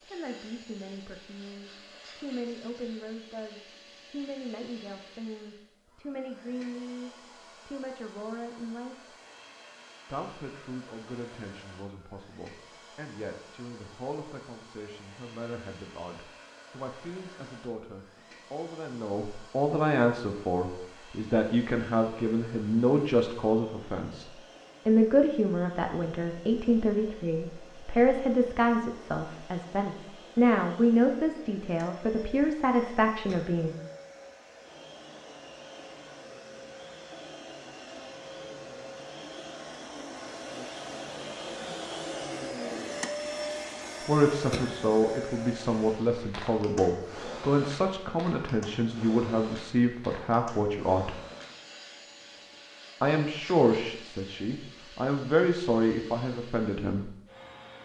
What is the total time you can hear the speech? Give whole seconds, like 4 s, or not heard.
44 s.